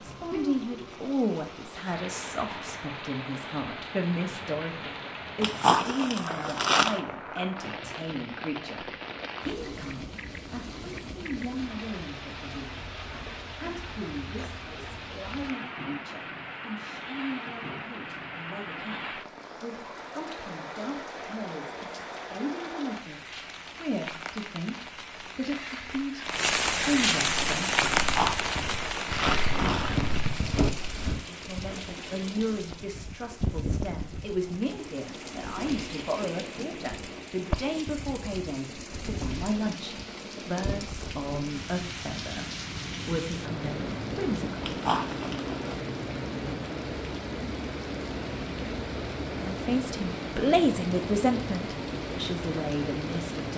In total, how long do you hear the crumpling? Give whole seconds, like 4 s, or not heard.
5 s.